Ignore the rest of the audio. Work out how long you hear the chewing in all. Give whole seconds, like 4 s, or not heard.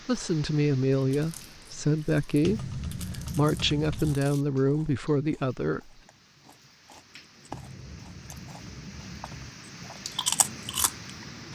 10 s.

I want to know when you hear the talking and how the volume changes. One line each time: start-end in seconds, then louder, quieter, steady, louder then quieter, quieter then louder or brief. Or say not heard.
0.1-5.9 steady.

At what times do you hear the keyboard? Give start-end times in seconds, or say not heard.
2.4-4.2, 7.5-9.5.